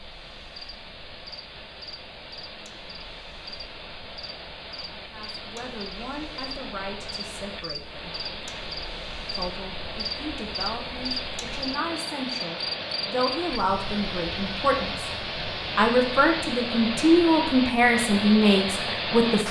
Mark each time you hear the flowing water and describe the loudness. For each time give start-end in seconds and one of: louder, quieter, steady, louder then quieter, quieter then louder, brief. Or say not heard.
0.0-19.4 louder.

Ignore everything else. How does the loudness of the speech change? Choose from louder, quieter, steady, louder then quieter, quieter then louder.
louder.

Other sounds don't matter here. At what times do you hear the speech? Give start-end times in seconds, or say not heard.
5.0-8.2, 9.3-15.1, 15.8-19.4.